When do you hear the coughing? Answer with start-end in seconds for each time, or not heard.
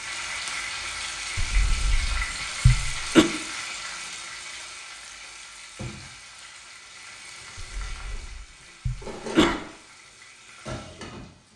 1.4-3.2, 7.5-9.6.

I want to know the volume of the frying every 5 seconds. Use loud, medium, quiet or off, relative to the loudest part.
loud, medium, medium.